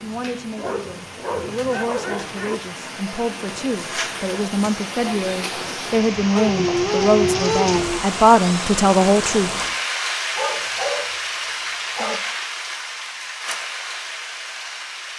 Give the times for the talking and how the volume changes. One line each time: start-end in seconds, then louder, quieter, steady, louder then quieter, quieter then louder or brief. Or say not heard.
0.0-9.5 louder.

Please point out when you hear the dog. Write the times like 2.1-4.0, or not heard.
0.6-2.5, 6.3-8.0, 10.3-12.2.